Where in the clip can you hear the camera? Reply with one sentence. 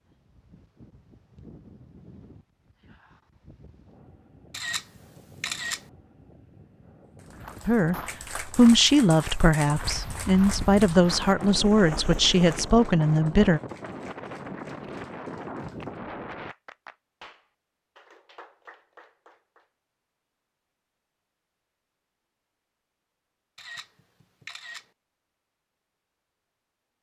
The camera can be heard from 4.5 to 5.8 s and from 23.6 to 24.9 s.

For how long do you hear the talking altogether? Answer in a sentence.
The talking can be heard for 6 seconds in total.